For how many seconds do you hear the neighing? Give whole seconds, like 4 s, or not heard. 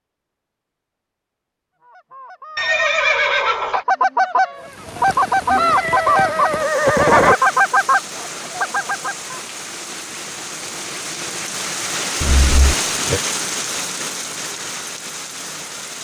4 s.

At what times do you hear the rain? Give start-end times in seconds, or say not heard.
4.5-15.9.